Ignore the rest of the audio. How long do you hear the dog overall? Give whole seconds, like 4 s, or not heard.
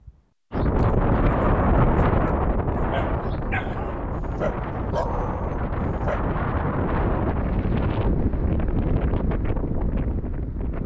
6 s.